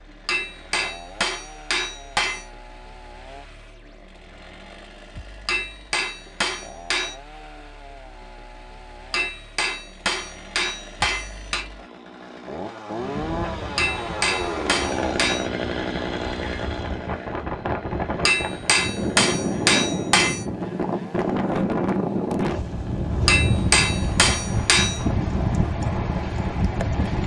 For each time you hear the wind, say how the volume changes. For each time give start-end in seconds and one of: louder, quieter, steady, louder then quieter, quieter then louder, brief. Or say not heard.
12.9-27.2 louder.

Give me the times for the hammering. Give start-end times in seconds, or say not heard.
0.2-2.5, 5.5-7.2, 9.1-11.7, 13.8-15.5, 18.2-20.4, 23.2-25.0.